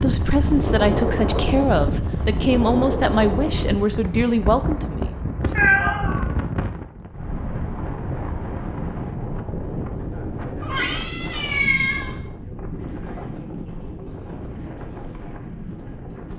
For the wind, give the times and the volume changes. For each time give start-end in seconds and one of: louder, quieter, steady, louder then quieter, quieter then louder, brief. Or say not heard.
0.0-16.3 quieter.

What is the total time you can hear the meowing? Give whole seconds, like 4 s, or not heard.
2 s.